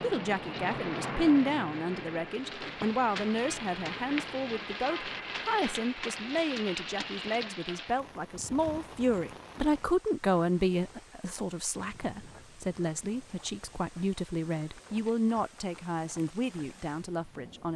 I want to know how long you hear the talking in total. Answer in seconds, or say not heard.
18 s.